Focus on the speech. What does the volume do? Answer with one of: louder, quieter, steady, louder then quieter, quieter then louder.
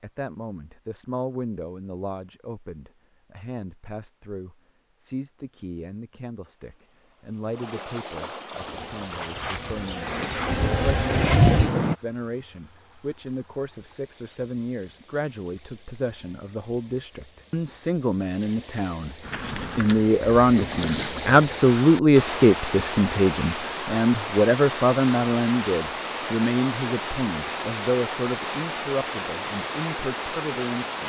louder then quieter.